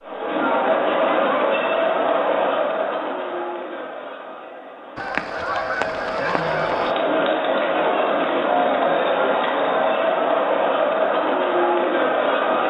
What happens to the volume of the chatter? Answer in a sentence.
The loudness of the chatter goes down, then up.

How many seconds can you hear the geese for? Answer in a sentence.
You can hear the geese for 2 seconds altogether.